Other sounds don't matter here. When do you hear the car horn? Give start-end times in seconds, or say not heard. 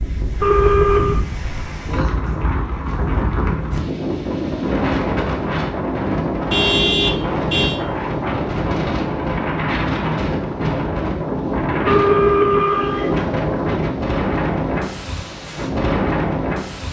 0.4-1.2, 6.5-7.8, 11.8-13.2.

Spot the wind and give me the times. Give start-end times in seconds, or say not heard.
0.0-16.8.